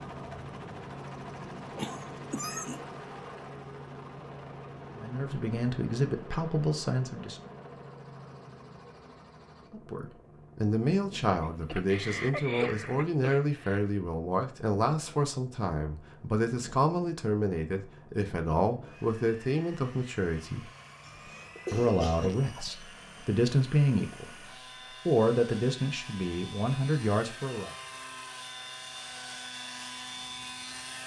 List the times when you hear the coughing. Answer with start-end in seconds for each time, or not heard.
1.8-2.9, 11.4-13.8, 21.1-22.7.